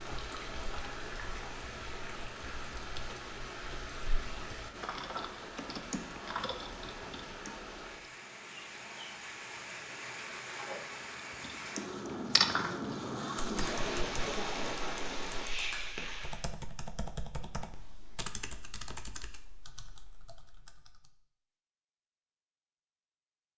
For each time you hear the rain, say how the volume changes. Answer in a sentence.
You can hear the rain from 0.0 to 16.4 s, getting louder.